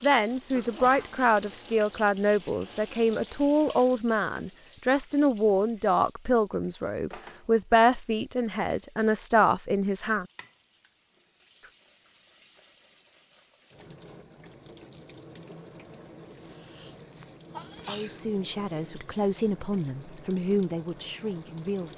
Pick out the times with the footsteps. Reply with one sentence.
You can't hear the footsteps here.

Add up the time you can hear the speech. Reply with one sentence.
You can hear the speech for 14 seconds altogether.